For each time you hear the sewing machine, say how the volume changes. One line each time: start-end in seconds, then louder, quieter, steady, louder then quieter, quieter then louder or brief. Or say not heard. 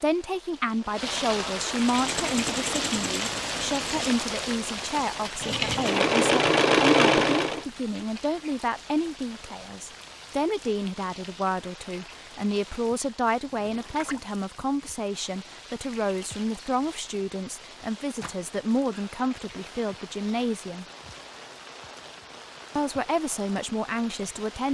1.8-7.7 quieter then louder.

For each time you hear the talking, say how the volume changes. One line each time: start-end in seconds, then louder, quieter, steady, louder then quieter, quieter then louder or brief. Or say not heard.
0.0-20.9 steady
22.8-24.7 brief.